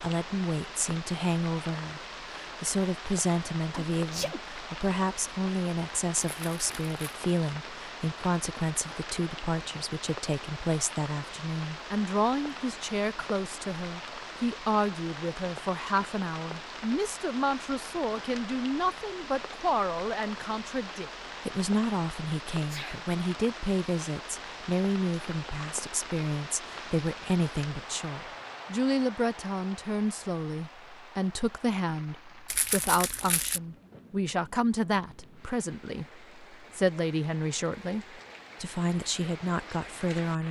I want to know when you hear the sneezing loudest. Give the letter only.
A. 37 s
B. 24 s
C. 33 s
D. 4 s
D.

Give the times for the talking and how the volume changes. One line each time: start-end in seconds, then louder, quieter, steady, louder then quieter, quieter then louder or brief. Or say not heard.
0.0-40.4 steady.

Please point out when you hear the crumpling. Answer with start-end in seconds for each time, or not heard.
6.2-7.2, 32.5-33.6.